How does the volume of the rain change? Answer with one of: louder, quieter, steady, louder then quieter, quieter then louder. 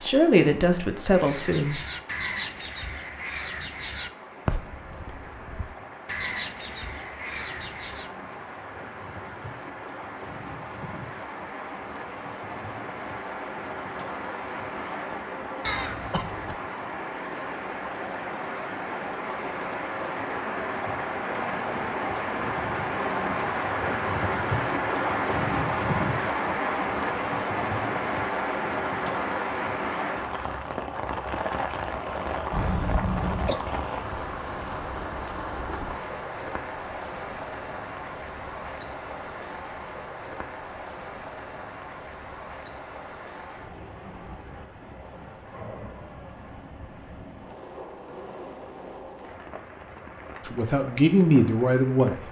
louder then quieter.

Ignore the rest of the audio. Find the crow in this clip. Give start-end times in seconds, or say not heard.
1.1-8.1.